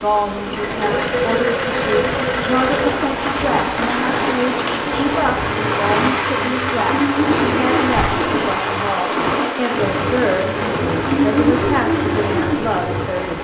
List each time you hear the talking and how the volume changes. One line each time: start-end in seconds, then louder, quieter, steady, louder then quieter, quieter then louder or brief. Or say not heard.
0.0-13.4 steady.